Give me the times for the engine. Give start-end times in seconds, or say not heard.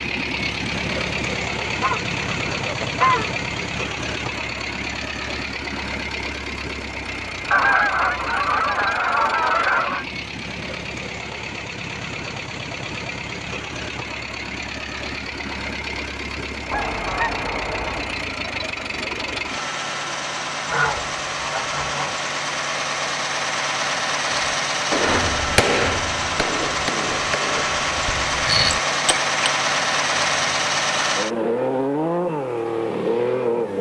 0.0-33.7.